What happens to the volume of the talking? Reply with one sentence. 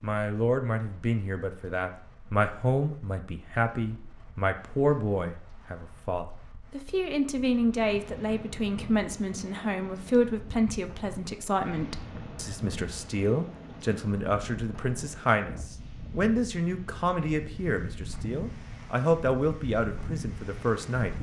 The volume of the talking stays about the same.